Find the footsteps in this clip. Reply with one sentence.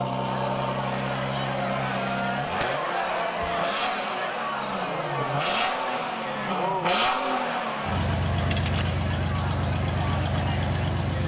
The footsteps can't be heard in this clip.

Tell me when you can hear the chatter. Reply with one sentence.
You can hear the chatter from 0.1 to 11.2 s.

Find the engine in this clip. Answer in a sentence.
You can hear the engine from 0.0 to 11.2 s.